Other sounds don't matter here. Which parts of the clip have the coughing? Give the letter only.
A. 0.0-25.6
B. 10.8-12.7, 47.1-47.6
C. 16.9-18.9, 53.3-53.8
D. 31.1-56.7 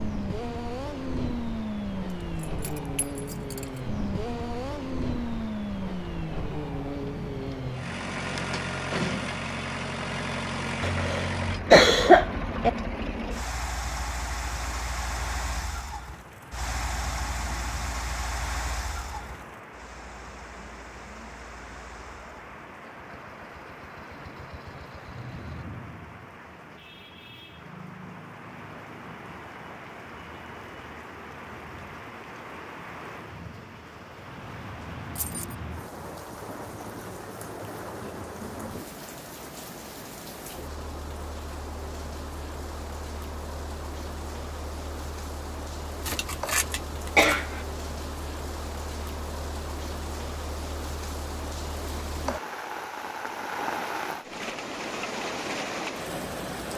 B.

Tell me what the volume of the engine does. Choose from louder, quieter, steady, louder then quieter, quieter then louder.
quieter.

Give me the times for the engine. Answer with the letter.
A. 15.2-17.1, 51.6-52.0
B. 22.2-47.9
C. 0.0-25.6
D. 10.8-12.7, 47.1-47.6
C.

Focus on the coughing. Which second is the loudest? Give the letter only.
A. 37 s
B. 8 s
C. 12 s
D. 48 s
C.